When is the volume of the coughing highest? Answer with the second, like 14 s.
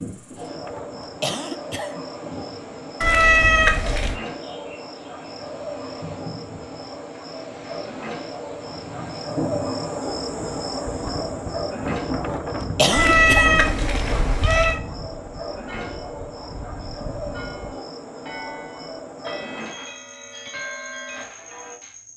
13 s.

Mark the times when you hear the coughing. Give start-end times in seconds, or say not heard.
0.7-2.0, 12.2-14.2.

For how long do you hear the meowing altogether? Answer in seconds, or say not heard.
3 s.